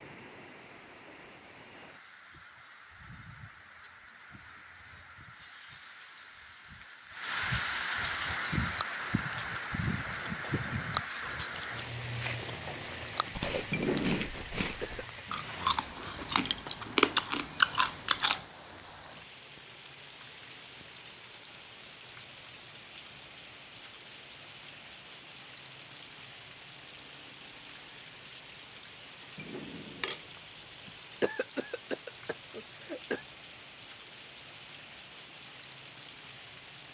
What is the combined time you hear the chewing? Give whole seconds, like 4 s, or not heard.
10 s.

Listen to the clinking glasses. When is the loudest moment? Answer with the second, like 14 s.
14 s.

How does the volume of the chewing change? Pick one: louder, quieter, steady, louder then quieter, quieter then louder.
louder.